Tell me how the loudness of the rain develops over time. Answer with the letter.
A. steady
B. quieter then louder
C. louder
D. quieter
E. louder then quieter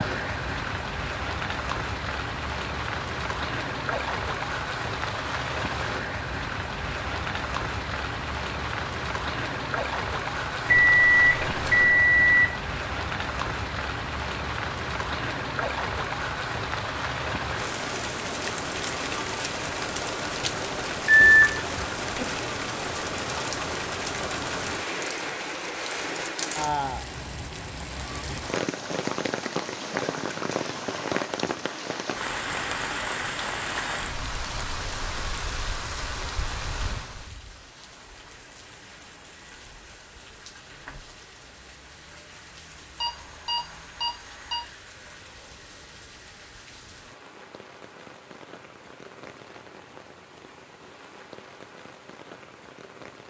D.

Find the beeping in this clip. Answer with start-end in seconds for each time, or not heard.
10.7-12.5, 21.1-22.2, 43.0-44.6.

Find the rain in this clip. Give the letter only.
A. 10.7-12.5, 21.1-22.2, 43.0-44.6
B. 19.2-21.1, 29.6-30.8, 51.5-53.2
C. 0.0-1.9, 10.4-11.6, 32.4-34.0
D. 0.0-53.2
D.